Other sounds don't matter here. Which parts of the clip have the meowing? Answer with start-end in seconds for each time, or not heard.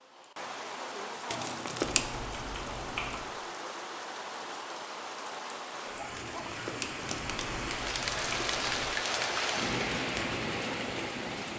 not heard.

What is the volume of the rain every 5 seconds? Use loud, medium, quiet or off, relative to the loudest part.
medium, loud, loud.